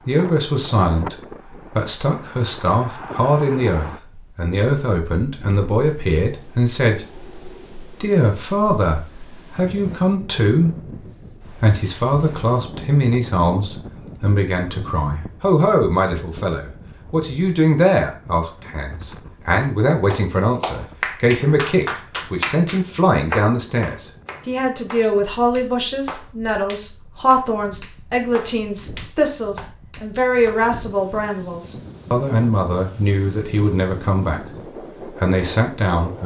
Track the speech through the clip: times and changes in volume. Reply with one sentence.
You can hear the speech from 0.1 to 36.2 s, at a steady volume.